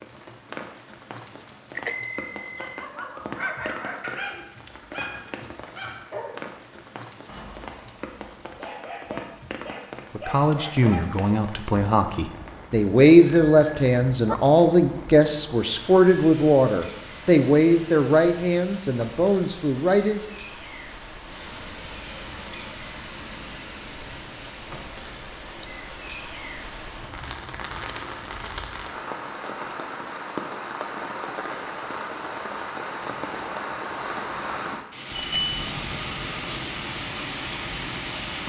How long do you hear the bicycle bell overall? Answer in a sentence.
The bicycle bell can be heard for 3 seconds in total.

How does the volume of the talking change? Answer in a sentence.
The loudness of the talking goes up, then down.